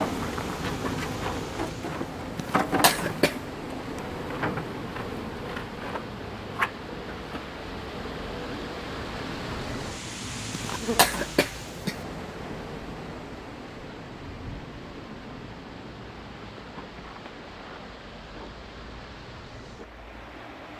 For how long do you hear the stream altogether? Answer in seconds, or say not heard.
21 s.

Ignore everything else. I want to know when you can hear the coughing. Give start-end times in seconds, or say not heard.
2.4-3.4, 10.5-11.9.